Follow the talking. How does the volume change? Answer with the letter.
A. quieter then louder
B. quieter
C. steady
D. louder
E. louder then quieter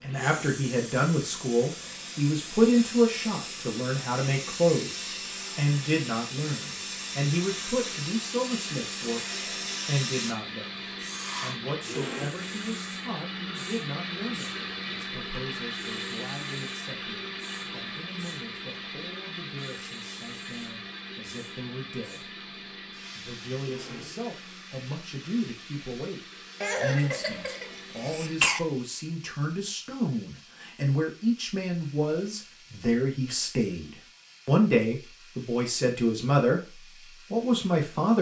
A.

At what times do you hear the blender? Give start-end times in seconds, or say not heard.
0.0-28.6.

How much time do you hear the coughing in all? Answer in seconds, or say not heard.
2 s.